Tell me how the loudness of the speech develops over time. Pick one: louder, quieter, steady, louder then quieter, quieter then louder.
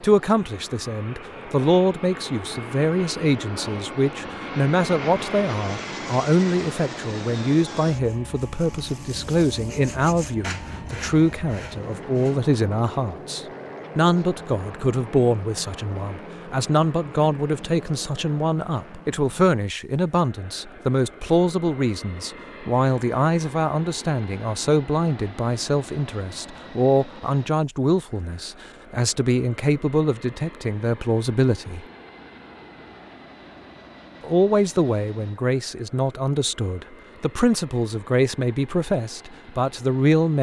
steady.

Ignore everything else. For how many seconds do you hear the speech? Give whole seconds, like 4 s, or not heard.
38 s.